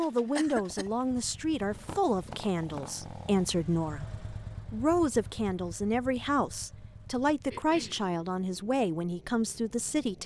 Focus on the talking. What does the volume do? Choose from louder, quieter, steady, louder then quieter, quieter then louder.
steady.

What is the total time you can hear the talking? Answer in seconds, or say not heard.
10 s.